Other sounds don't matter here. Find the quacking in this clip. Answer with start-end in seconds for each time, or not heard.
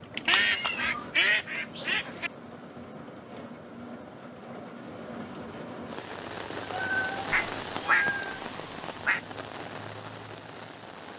0.2-2.3, 7.3-9.2.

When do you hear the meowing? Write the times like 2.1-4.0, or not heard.
0.1-0.8, 6.6-8.4.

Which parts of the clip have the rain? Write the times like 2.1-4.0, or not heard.
0.0-11.1.